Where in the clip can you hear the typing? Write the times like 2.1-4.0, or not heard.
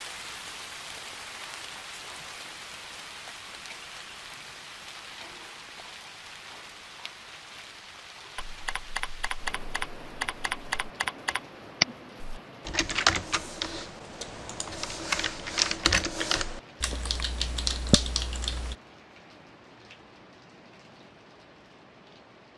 8.3-18.8.